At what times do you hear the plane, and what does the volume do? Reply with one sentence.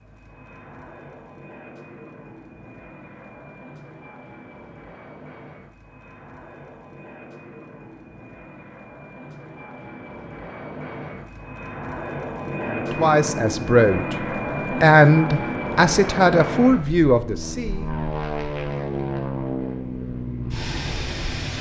You can hear the plane from 0.0 to 21.5 s, getting louder.